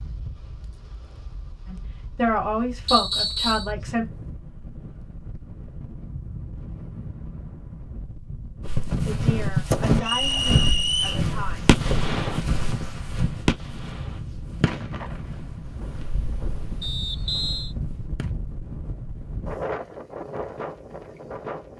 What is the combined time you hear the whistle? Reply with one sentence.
The whistle can be heard for 3 seconds in total.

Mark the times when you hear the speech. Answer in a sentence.
The speech can be heard from 1.6 to 4.1 s and from 9.1 to 11.8 s.